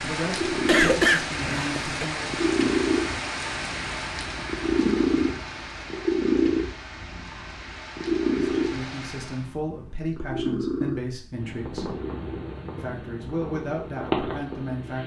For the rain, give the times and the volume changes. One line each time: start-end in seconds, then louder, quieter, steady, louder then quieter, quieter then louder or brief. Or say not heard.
0.0-9.6 quieter.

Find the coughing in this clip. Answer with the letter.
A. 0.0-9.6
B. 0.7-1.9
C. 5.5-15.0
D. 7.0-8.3
B.